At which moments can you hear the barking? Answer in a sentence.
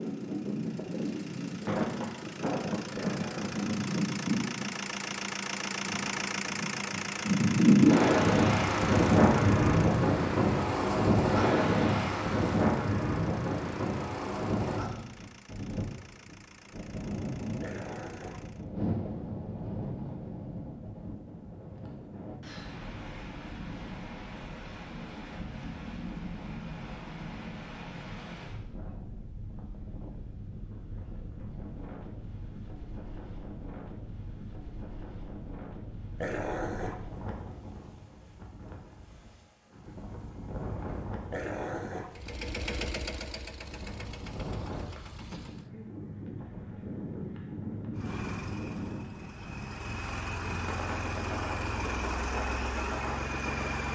You can hear the barking from 3.0 to 3.8 s, from 17.6 to 18.4 s, from 36.1 to 37.0 s and from 41.3 to 42.1 s.